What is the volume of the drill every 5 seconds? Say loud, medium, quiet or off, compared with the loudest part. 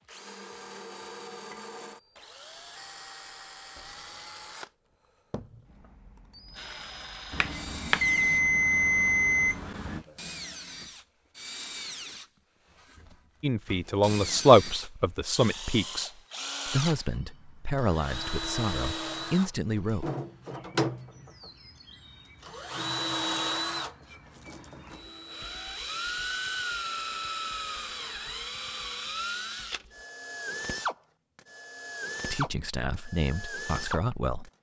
medium, medium, medium, loud, loud, loud, loud.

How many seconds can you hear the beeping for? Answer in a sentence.
The beeping can be heard for 3 seconds in total.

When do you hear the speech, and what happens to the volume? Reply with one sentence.
You can hear the speech from 13.4 to 20.1 s, getting quieter; and briefly from 32.2 to 34.5 s.